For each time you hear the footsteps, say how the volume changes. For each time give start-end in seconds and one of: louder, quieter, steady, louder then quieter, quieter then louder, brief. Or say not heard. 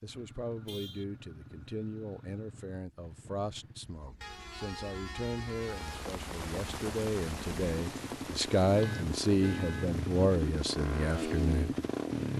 not heard.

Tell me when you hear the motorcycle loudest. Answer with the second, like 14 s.
12 s.